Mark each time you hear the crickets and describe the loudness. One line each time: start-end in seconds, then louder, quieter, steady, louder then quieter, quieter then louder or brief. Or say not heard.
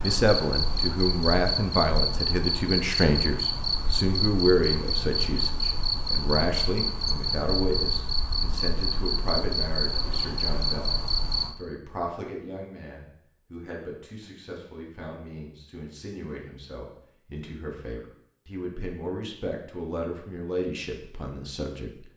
0.0-11.6 steady.